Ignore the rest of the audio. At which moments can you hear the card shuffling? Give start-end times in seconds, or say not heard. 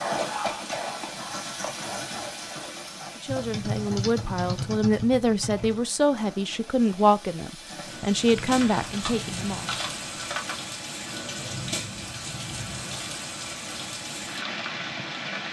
not heard.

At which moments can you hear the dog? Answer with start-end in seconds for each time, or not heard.
0.0-2.5.